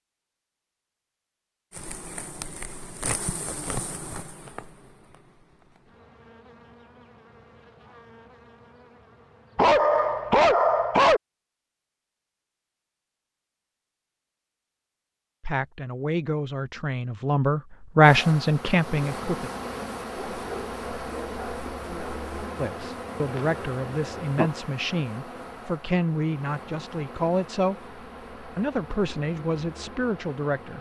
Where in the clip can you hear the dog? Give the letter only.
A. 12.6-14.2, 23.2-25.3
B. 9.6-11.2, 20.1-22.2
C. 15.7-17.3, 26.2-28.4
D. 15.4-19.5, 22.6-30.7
B.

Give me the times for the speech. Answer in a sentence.
The speech can be heard from 15.4 to 19.5 s and from 22.6 to 30.7 s.